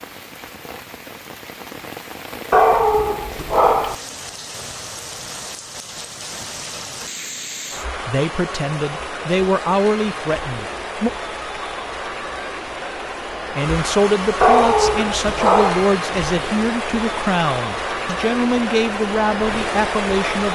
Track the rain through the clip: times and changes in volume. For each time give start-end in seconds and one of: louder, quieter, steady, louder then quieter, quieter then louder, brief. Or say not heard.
0.0-20.5 louder.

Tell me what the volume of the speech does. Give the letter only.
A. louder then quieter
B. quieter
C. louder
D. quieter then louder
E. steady
E.